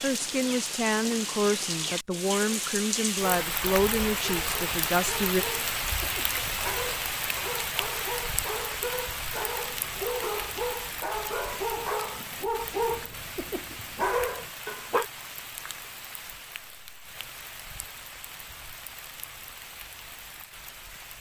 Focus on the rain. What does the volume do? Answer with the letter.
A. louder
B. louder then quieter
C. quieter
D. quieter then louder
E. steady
C.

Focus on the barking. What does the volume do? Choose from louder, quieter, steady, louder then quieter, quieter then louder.
louder.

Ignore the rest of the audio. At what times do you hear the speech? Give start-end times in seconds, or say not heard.
0.0-5.5.